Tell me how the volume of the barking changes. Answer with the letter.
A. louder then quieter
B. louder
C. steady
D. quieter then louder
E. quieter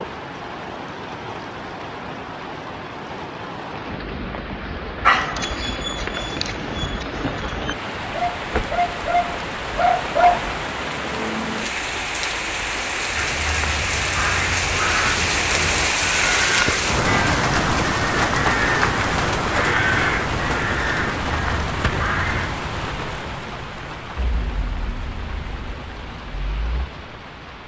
B.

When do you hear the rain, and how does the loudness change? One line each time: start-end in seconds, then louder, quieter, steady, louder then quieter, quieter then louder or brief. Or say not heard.
0.0-27.6 louder then quieter.